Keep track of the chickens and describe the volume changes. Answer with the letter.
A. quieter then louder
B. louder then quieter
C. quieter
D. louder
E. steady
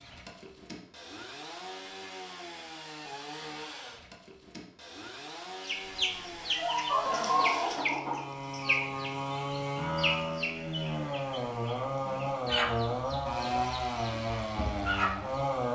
C.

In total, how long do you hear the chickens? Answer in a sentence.
The chickens can be heard for 10 seconds in total.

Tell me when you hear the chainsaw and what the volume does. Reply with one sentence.
You can hear the chainsaw from 0.0 to 15.6 s, getting louder.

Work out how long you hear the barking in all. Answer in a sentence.
The barking can't be heard in this clip.